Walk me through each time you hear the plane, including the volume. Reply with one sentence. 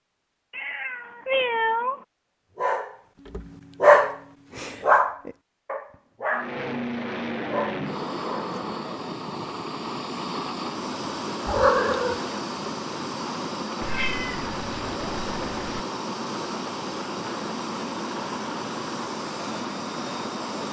The plane can be heard from 6.3 to 20.6 s, at a steady volume.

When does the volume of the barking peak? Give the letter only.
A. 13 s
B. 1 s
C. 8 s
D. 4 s
D.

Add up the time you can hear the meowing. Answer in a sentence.
The meowing can be heard for 4 seconds in total.